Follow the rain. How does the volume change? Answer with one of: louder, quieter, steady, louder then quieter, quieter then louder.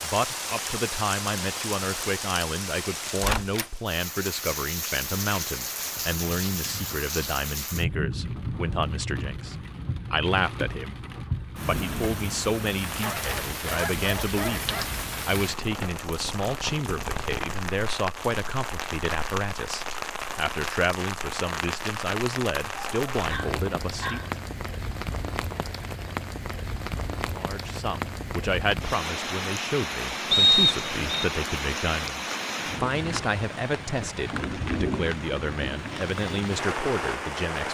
steady.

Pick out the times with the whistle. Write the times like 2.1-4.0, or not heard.
30.3-31.2.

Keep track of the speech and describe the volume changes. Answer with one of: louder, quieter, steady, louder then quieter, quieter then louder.
steady.